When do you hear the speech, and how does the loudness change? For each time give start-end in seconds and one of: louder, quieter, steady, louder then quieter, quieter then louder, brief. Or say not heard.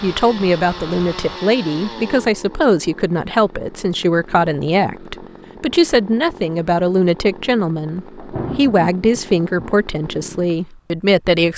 0.0-11.5 steady.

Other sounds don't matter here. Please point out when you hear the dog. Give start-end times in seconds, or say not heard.
not heard.